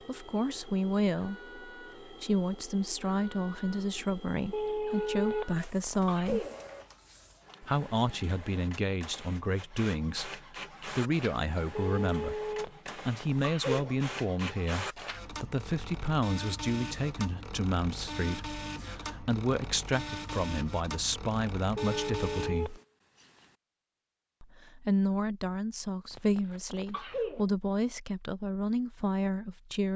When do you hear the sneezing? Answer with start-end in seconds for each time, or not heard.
5.5-6.6, 12.6-13.9, 26.1-27.4.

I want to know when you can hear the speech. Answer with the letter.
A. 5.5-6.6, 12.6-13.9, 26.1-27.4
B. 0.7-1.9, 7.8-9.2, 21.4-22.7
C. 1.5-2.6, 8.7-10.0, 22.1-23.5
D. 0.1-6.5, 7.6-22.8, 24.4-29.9
D.